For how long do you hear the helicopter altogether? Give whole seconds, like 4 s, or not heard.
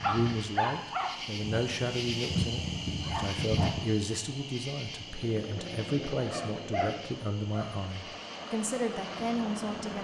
5 s.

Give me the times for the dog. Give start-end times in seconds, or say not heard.
0.0-3.9, 6.2-7.8.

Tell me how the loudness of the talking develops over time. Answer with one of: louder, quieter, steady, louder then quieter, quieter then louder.
steady.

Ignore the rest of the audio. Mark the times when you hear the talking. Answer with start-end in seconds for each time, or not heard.
0.0-9.9.